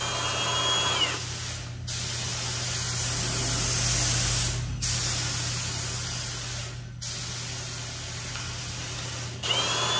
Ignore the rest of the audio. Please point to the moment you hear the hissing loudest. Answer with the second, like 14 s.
4 s.